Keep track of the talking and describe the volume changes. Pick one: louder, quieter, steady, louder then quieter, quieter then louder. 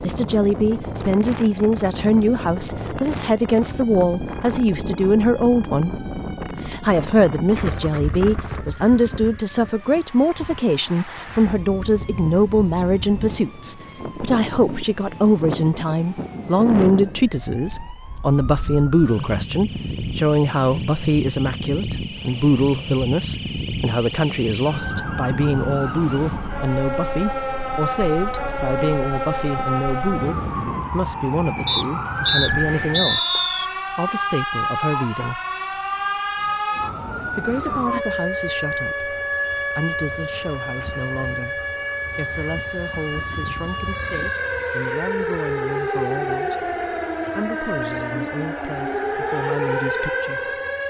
quieter.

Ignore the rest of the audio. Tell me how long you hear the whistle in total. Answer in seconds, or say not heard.
2 s.